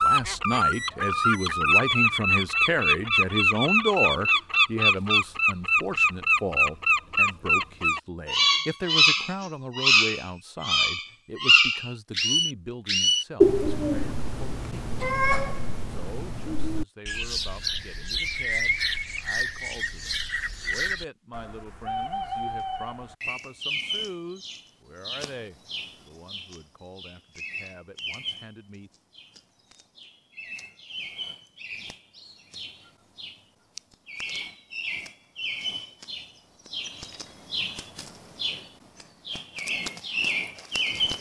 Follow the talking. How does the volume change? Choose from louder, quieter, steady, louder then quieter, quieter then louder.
quieter.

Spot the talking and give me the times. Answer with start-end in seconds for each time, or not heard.
0.0-14.9, 15.9-28.9.